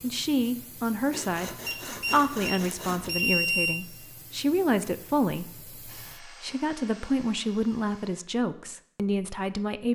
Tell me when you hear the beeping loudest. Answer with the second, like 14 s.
3 s.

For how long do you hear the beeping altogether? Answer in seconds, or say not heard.
2 s.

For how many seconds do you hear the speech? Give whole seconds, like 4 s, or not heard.
10 s.